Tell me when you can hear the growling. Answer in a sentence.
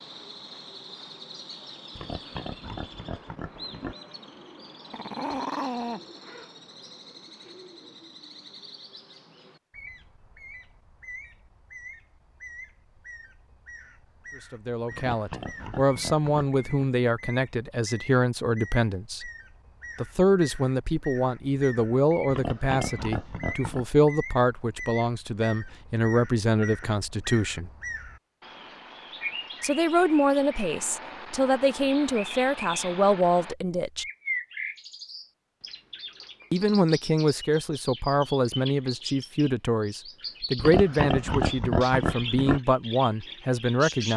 You can hear the growling from 4.9 to 6.0 s.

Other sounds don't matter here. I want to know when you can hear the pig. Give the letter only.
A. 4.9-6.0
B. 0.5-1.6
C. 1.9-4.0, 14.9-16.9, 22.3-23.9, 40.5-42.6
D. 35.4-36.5
C.